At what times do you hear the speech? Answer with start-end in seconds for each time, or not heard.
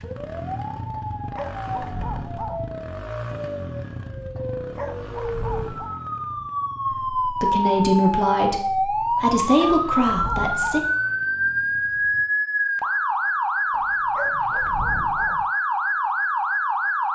6.9-10.8.